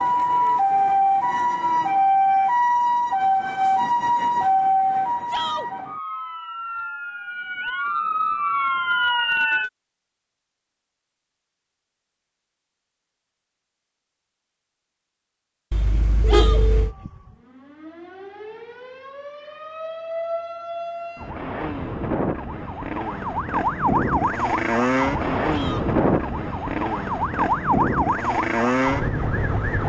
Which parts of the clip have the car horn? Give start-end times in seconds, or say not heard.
15.7-16.9.